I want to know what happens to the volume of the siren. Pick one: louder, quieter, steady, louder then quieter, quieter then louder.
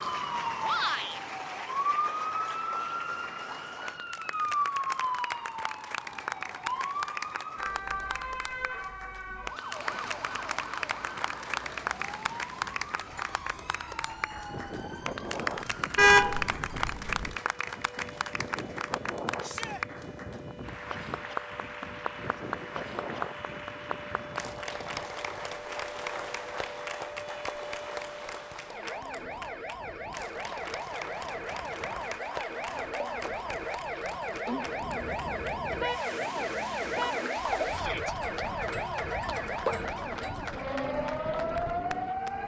quieter then louder.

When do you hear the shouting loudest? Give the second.
1 s.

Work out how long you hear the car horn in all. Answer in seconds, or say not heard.
4 s.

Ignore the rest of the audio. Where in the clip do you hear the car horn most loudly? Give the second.
16 s.